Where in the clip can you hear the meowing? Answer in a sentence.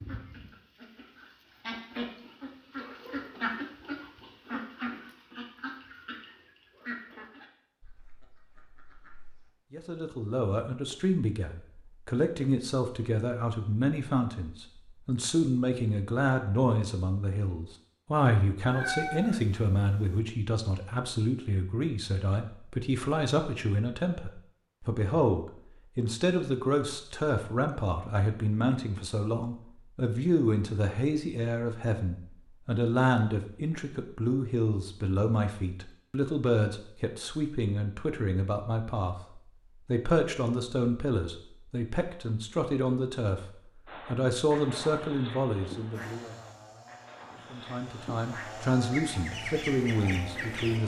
You can hear the meowing from 18.7 to 20.2 s.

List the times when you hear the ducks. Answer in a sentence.
You can hear the ducks from 0.0 to 9.5 s and from 43.9 to 50.8 s.